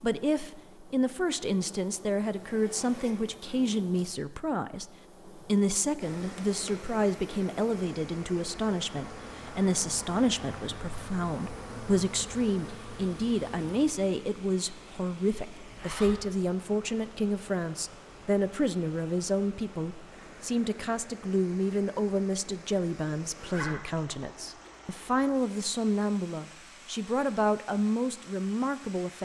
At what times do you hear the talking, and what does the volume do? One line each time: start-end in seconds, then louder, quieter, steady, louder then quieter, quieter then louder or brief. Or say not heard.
0.0-29.2 steady.